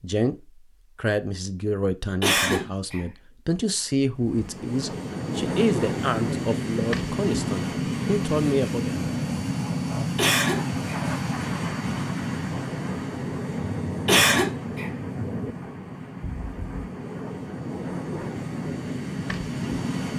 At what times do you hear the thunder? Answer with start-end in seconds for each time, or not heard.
13.5-15.6.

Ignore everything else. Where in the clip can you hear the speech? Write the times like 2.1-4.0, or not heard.
0.0-9.0.